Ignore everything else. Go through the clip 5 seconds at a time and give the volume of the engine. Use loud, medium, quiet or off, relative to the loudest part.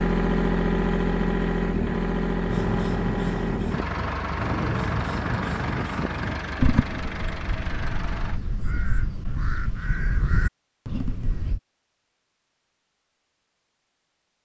loud, medium, off.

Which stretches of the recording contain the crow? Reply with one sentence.
The crow can be heard from 2.5 to 11.6 s.